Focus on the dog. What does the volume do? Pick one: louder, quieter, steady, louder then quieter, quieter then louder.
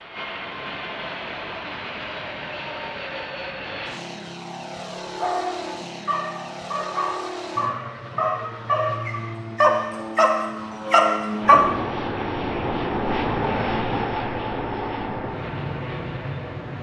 louder.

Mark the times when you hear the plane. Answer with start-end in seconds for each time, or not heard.
0.0-16.7.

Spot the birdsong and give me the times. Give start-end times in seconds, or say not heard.
not heard.